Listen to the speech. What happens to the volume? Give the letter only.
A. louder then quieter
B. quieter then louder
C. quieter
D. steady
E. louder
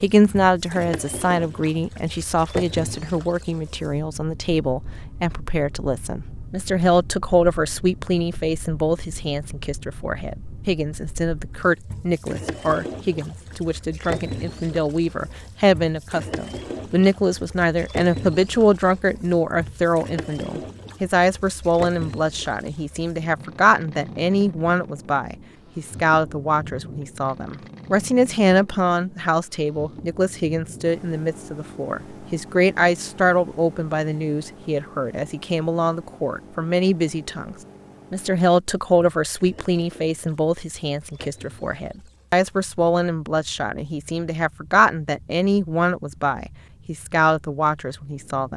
D.